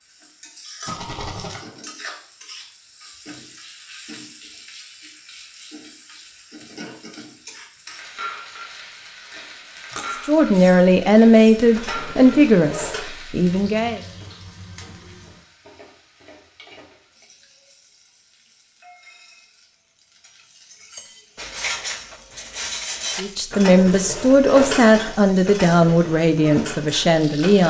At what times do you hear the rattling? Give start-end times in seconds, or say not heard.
0.8-1.6.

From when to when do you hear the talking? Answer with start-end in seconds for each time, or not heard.
10.2-14.0, 23.1-27.6.